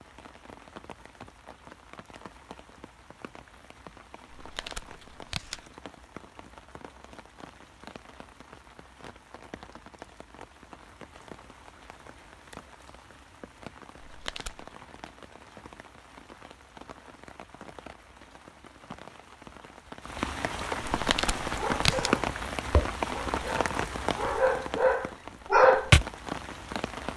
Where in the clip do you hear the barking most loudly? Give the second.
26 s.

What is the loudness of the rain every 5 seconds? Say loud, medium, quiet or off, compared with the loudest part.
quiet, quiet, quiet, quiet, loud, medium.